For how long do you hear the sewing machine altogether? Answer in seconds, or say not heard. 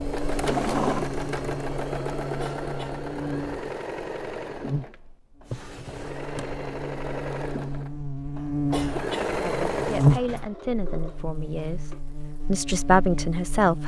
10 s.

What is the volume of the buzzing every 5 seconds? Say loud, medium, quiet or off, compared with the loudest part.
medium, medium, loud.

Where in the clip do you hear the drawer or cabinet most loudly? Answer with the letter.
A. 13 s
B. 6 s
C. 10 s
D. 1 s
D.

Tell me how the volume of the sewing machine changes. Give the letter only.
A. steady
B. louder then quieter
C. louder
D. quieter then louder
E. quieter
D.